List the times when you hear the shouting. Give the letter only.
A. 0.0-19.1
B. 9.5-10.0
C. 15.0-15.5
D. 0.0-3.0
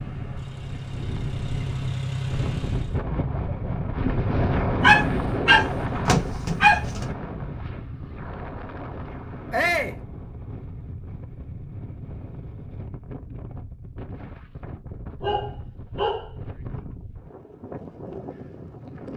B.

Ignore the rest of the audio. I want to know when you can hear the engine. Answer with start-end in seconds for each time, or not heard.
0.0-3.0.